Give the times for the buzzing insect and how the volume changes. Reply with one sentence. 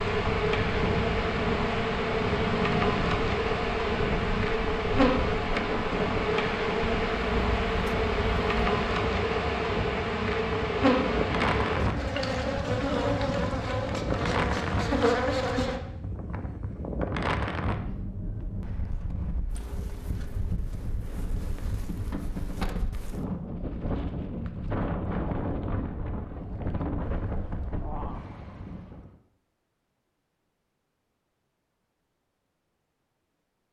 The buzzing insect can be heard from 0.0 to 15.8 s, at a steady volume.